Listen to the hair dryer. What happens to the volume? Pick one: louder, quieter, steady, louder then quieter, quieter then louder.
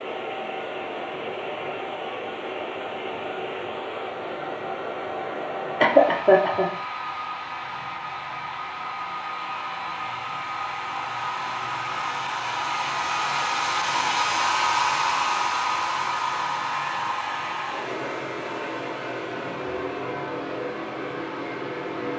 louder then quieter.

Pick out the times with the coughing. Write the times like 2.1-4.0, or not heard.
5.8-6.7.